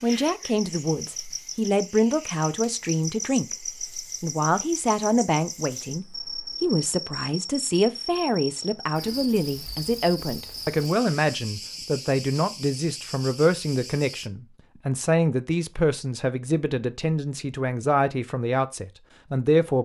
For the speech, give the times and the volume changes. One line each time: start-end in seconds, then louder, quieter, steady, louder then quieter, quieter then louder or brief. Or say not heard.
0.0-19.8 steady.